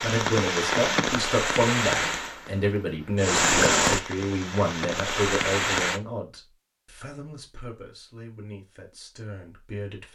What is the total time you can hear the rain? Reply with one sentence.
You can hear the rain for 6 seconds altogether.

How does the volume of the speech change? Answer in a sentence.
The volume of the speech goes down.